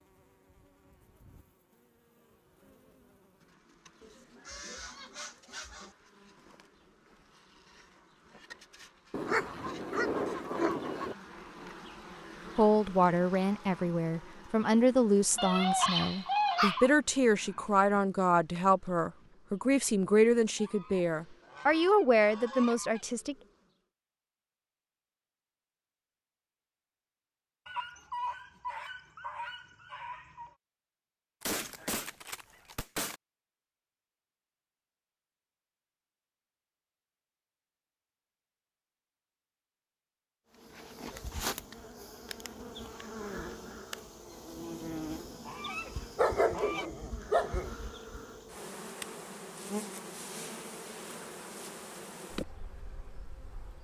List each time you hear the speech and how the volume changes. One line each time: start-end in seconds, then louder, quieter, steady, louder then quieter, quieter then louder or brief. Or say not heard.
12.6-23.4 steady.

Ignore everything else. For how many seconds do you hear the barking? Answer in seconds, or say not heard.
8 s.